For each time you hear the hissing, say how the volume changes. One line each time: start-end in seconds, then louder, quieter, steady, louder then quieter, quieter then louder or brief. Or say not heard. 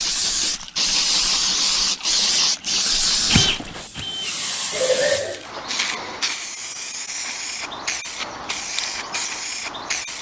0.0-10.1 quieter.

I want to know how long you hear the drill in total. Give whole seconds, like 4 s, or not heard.
2 s.